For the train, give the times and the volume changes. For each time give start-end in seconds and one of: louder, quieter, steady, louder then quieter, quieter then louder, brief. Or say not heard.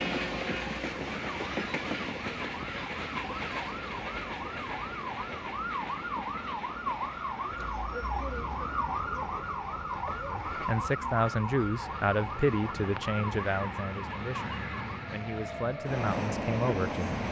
0.0-17.2 quieter then louder.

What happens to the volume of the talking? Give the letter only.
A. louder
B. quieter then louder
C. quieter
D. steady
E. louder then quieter
B.